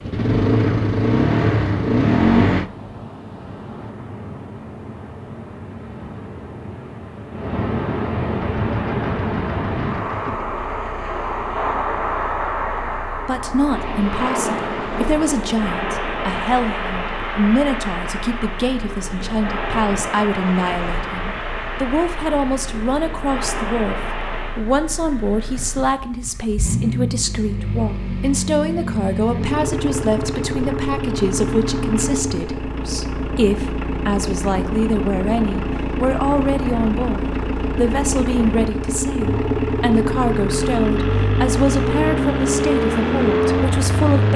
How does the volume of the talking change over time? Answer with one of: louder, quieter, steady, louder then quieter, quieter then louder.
steady.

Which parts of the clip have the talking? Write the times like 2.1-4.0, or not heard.
13.2-44.3.